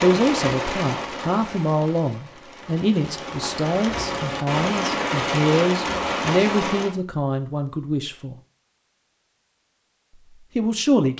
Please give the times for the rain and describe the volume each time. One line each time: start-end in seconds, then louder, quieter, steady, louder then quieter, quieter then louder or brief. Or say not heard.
0.0-7.0 quieter then louder.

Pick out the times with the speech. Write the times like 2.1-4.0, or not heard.
0.0-8.3, 10.3-11.1.